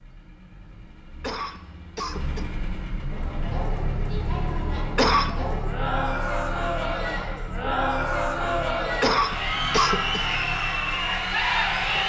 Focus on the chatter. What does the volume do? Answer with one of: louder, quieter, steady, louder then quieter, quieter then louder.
louder.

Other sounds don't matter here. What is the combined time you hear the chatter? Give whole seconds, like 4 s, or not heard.
9 s.